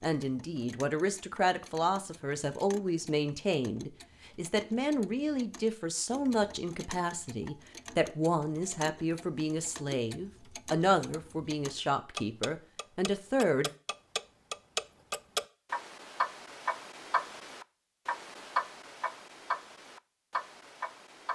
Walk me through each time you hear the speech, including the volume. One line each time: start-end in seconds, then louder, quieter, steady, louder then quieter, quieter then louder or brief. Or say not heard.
0.0-13.7 steady.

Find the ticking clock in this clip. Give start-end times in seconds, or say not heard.
0.0-21.3.